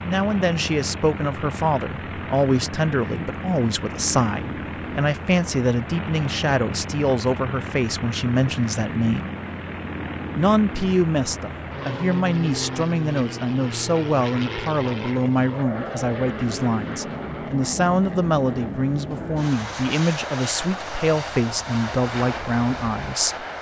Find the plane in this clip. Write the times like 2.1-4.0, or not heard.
0.0-23.5.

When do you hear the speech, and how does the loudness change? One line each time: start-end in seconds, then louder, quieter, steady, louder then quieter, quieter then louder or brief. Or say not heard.
0.0-9.3 steady
10.3-23.4 steady.